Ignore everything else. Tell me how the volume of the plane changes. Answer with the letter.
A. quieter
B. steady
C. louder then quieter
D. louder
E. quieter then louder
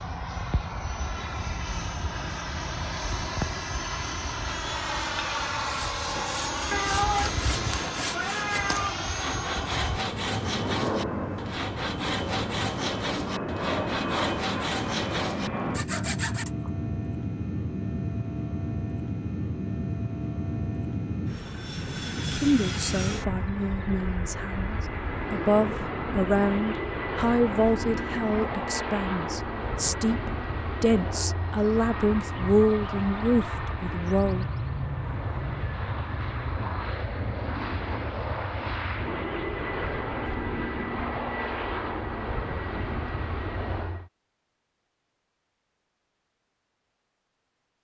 B.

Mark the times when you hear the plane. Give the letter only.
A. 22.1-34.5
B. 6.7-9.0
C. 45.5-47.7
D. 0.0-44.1
D.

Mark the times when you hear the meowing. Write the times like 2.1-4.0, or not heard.
6.7-9.0.